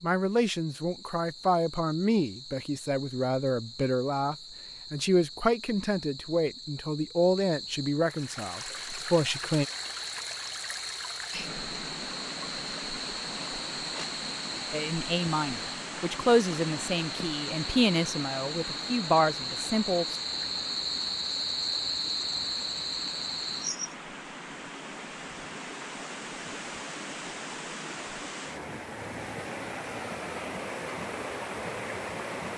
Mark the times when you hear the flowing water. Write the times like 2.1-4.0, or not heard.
8.0-32.5.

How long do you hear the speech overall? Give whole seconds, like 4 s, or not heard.
15 s.